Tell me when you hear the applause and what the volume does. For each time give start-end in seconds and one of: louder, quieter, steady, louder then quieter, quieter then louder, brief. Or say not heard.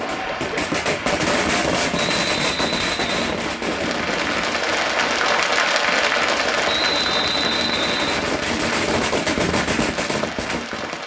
0.0-11.0 louder then quieter.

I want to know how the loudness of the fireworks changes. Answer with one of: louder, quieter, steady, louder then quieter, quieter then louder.
quieter then louder.